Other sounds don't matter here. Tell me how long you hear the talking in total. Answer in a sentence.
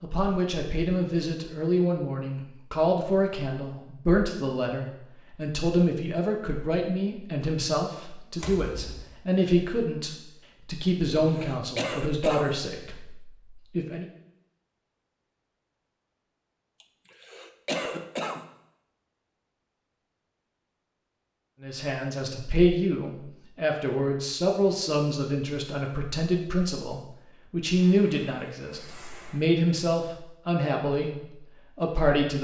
You can hear the talking for 25 seconds altogether.